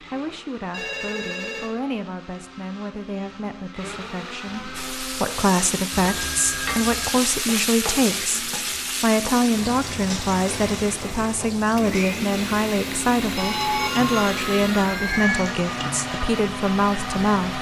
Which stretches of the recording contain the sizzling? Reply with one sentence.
The sizzling can be heard from 4.8 to 17.5 s.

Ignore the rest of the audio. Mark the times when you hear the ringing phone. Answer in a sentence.
You can hear the ringing phone from 0.7 to 1.8 s, from 5.9 to 7.2 s and from 13.3 to 15.5 s.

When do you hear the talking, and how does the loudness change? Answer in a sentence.
You can hear the talking from 0.0 to 17.5 s, getting louder.